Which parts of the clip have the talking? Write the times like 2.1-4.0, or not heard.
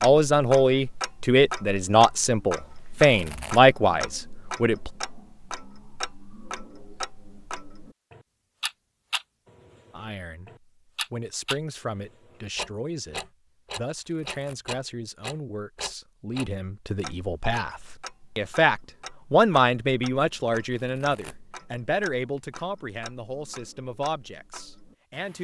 0.0-4.9, 9.9-25.3.